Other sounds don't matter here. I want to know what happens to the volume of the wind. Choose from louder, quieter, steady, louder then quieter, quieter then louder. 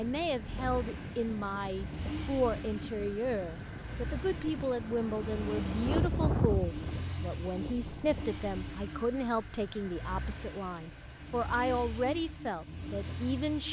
louder.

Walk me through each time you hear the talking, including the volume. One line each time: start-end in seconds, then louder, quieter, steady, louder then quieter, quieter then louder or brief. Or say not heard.
0.0-13.6 steady.